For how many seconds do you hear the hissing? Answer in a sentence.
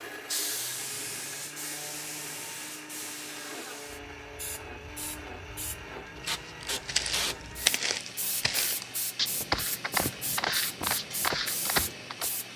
You can hear the hissing for 12 seconds altogether.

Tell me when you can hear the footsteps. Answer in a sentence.
You can hear the footsteps from 6.5 to 12.3 s.